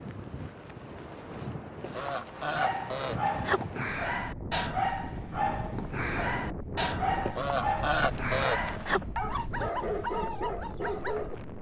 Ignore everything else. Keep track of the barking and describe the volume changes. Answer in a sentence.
The loudness of the barking stays about the same.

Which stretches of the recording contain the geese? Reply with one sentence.
You can hear the geese from 1.8 to 3.6 s and from 7.2 to 9.0 s.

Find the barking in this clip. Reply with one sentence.
You can hear the barking from 2.5 to 11.3 s.